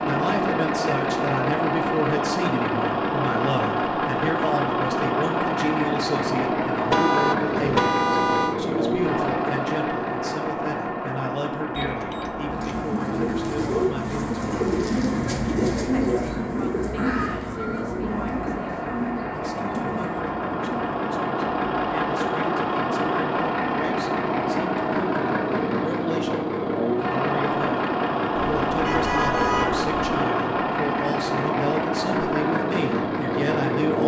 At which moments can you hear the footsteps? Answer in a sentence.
The footsteps can't be heard in this clip.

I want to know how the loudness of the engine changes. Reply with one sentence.
The loudness of the engine goes down, then up.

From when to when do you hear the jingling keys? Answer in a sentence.
The jingling keys can be heard from 11.8 to 12.9 s.